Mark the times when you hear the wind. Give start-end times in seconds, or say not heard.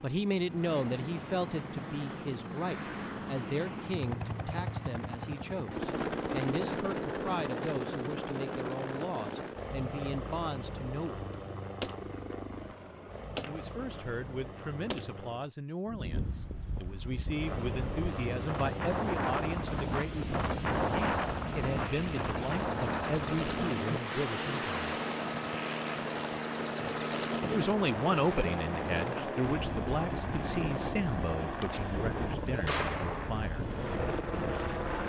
15.8-35.0.